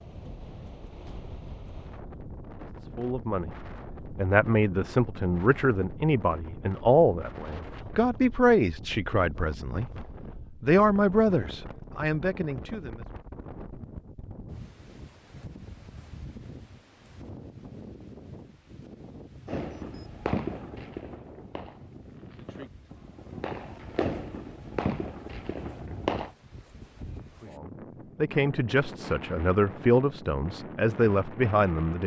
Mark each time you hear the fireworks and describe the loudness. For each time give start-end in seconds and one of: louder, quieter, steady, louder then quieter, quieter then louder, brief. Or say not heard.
19.4-26.4 quieter then louder.